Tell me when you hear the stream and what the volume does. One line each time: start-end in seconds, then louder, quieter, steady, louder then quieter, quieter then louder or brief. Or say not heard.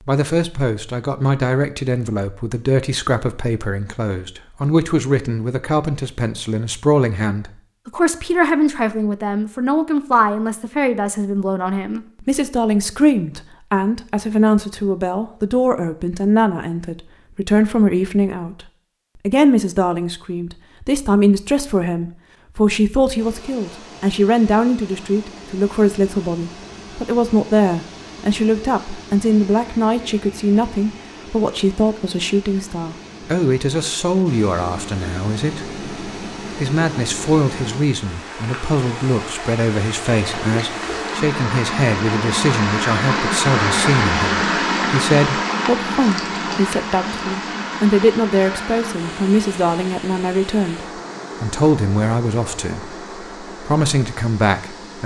23.1-55.0 louder then quieter.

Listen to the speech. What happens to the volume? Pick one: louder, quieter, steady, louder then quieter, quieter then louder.
steady.